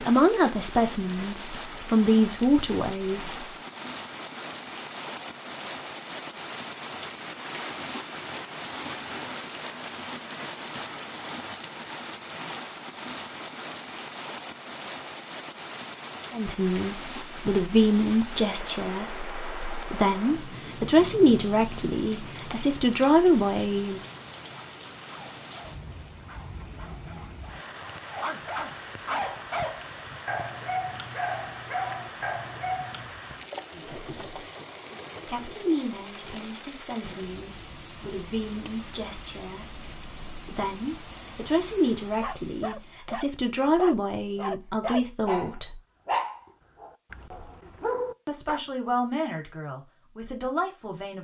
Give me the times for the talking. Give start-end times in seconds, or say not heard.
0.0-3.4, 16.3-24.0, 33.7-34.4, 35.2-45.8, 48.2-51.1.